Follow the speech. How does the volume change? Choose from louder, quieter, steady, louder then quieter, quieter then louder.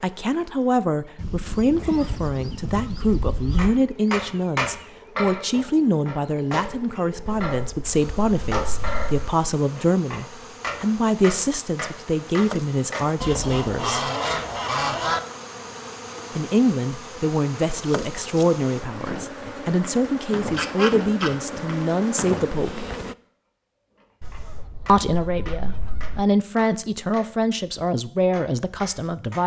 steady.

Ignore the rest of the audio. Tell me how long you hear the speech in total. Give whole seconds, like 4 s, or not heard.
25 s.